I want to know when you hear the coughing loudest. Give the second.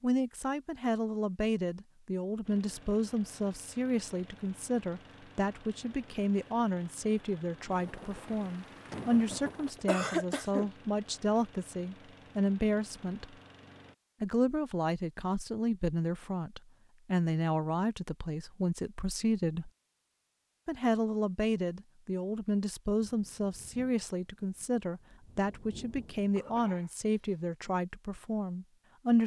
10 s.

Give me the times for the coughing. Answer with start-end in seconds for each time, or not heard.
9.8-10.7, 26.4-27.4.